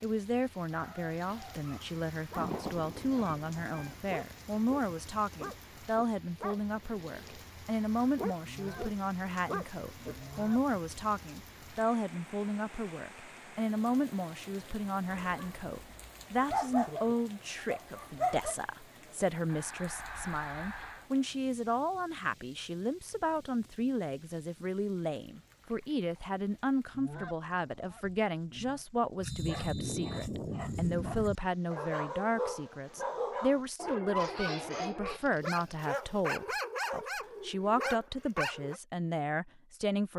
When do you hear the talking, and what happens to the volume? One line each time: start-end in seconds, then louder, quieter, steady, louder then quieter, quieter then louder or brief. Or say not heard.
0.0-40.1 steady.